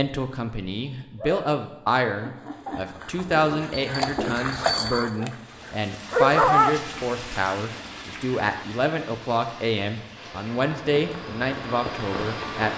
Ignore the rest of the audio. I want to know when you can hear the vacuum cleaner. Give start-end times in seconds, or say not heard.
10.2-12.7.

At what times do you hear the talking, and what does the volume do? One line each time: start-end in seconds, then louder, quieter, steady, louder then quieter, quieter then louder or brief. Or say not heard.
0.0-12.7 steady.